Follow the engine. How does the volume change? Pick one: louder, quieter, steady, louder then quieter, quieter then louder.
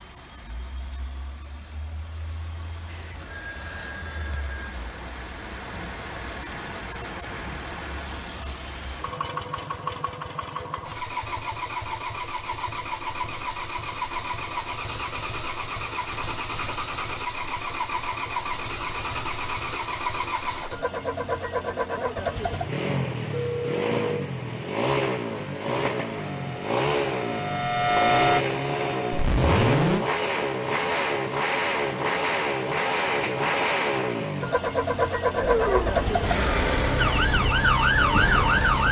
louder.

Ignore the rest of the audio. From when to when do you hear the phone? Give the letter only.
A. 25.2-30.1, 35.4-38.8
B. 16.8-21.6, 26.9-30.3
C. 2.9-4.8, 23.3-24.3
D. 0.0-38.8
C.